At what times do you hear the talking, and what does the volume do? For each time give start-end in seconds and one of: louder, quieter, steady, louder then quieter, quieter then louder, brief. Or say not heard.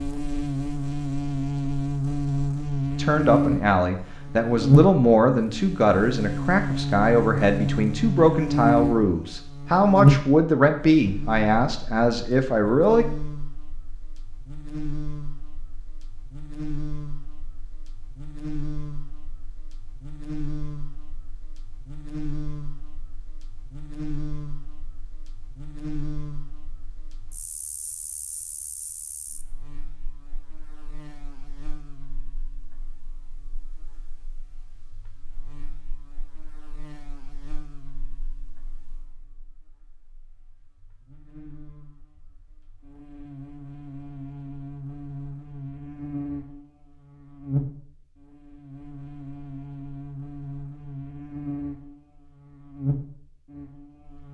3.0-13.1 steady.